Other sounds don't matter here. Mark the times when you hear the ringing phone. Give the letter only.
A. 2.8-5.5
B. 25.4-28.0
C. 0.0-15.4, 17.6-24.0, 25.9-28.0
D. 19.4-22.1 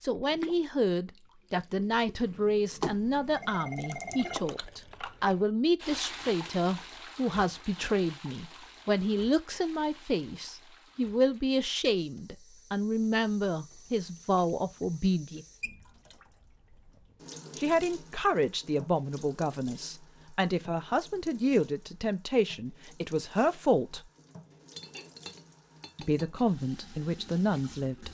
A.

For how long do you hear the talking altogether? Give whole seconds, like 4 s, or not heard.
24 s.